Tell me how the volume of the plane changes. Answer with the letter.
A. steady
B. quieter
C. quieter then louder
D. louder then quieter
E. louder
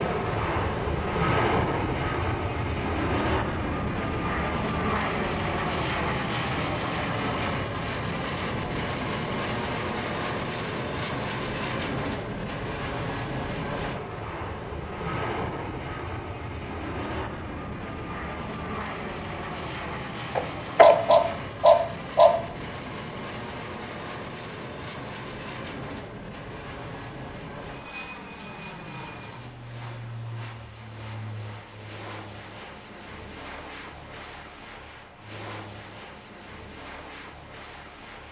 B.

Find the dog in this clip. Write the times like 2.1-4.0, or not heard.
20.4-22.3.